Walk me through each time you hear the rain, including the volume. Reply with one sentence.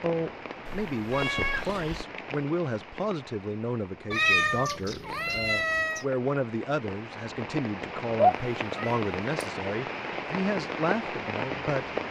The rain can be heard from 0.0 to 12.0 s, getting quieter then louder.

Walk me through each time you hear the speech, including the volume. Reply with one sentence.
The speech can be heard from 0.0 to 11.9 s, at a steady volume.